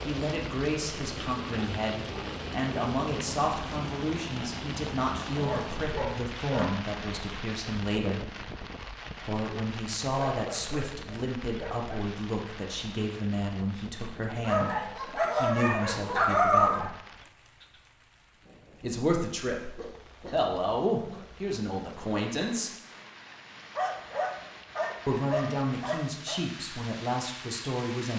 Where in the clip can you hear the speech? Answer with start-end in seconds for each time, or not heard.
0.0-8.2, 9.2-16.9, 18.8-22.7, 25.1-28.1.